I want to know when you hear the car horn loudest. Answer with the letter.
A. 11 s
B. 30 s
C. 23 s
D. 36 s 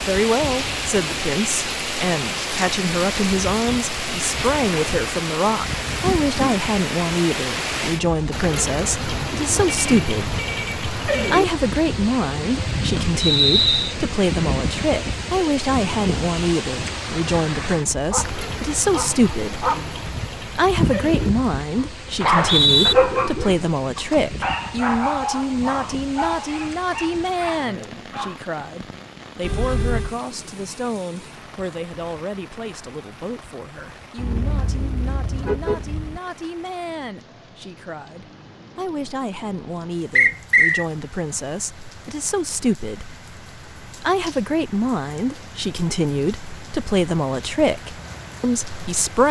D.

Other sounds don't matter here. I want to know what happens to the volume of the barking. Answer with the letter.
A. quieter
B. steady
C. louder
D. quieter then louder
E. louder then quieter
E.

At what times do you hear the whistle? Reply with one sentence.
The whistle can be heard from 13.2 to 13.9 s, from 22.2 to 22.9 s and from 40.1 to 40.9 s.